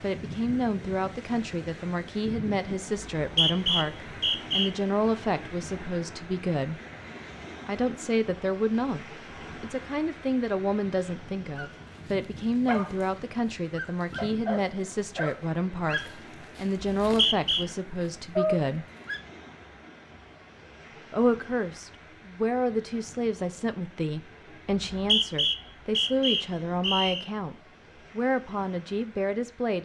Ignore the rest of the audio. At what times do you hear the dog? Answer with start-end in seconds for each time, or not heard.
11.6-19.2.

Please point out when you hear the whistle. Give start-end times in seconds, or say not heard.
3.1-4.7, 17.0-17.6, 24.7-27.2.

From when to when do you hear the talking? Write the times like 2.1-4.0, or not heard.
0.0-6.8, 7.7-18.9, 21.1-29.8.